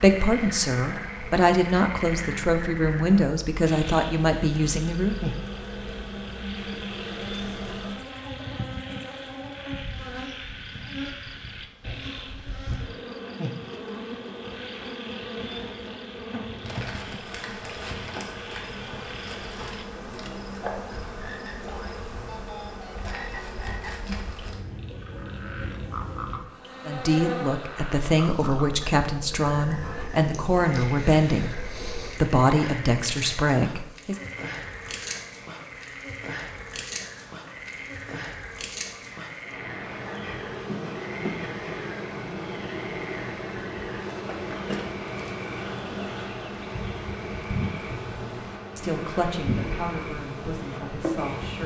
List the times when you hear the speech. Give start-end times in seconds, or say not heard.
0.0-5.2, 26.9-31.5, 32.1-34.1, 48.1-51.6.